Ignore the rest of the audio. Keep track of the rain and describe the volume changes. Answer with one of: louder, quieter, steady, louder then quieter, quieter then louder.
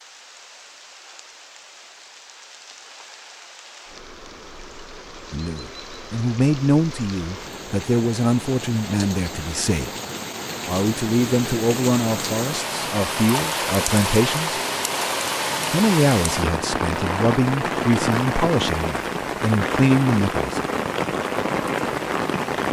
louder.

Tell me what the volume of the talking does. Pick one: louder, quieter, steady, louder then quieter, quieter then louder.
steady.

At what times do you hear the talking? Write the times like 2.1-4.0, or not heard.
5.3-9.9, 10.7-14.6, 15.7-20.6.